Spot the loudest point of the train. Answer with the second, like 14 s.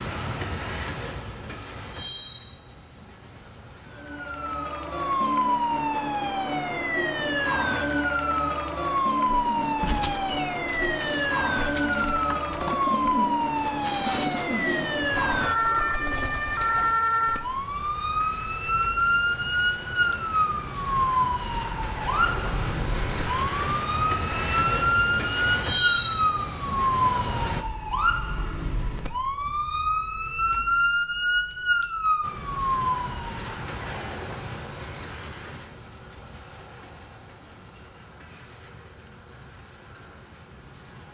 26 s.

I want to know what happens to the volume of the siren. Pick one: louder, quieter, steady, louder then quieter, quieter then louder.
steady.